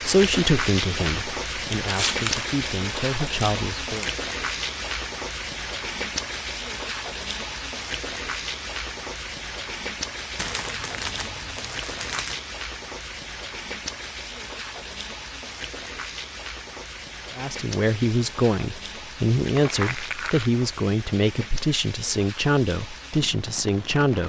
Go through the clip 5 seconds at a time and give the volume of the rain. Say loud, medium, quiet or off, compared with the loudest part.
loud, loud, medium, medium, medium.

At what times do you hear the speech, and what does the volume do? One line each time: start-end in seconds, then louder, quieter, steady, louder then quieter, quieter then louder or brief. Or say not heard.
0.1-4.0 quieter then louder
17.4-24.2 steady.